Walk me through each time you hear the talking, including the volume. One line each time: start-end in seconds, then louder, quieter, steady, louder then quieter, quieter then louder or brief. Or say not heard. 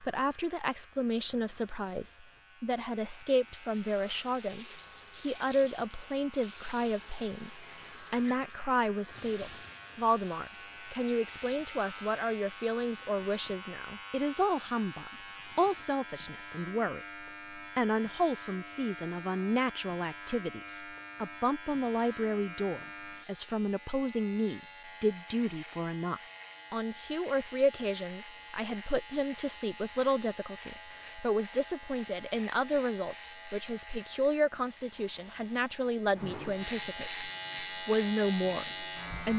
0.0-39.3 steady.